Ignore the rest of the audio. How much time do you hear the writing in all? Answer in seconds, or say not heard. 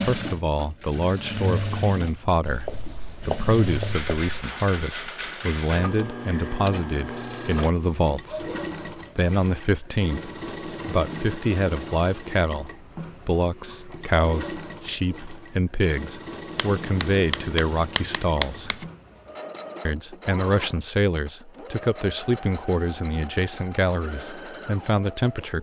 4 s.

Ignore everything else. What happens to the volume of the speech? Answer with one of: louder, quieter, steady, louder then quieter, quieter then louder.
steady.